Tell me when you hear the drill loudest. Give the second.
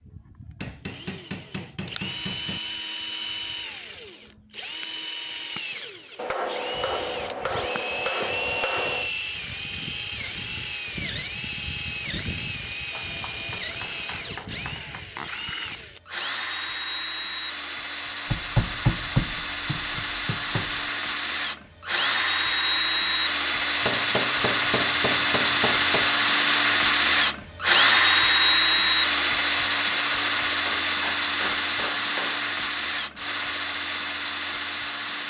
28 s.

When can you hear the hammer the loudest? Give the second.
19 s.